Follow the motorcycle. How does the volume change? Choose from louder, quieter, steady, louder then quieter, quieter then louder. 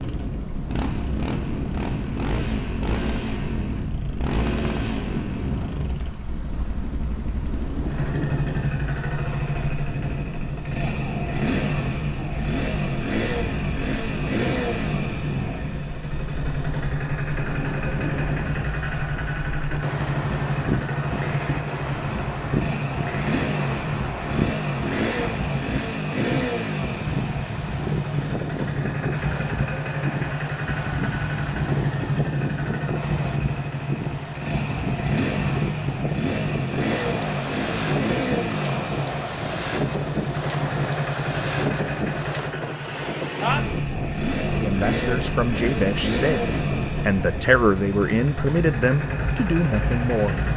steady.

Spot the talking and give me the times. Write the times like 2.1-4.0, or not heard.
44.5-50.4.